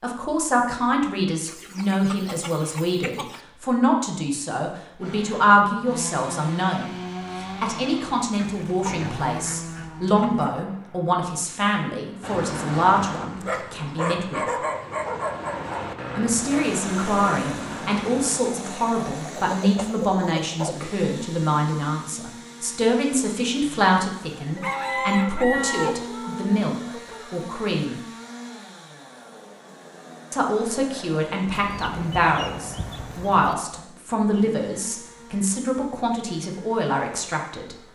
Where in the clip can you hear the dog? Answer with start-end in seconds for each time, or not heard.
12.2-18.4.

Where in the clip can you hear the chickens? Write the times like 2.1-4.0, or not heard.
1.4-3.4, 8.3-10.6, 19.2-20.8, 24.6-27.4, 31.6-33.5.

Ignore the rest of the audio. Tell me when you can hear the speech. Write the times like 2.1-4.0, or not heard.
0.0-14.4, 16.1-28.0, 30.3-37.8.